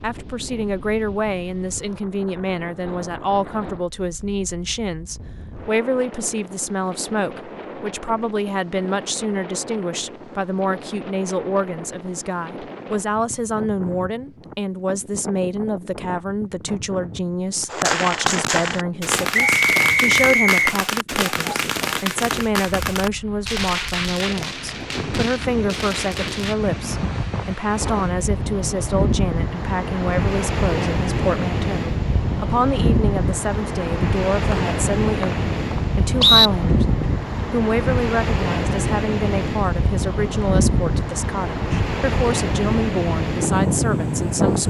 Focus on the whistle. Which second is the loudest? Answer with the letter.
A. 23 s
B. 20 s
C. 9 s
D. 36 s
D.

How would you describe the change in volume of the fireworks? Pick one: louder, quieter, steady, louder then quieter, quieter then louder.
quieter.